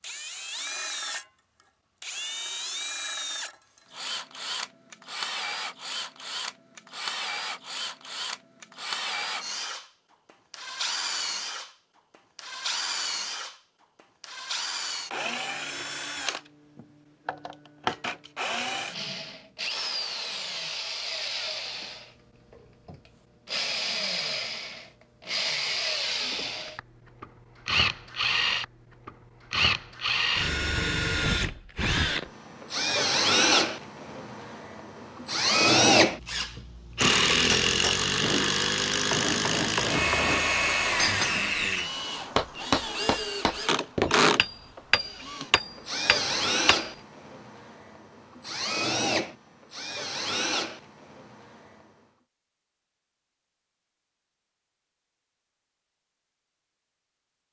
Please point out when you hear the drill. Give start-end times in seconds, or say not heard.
0.0-51.9.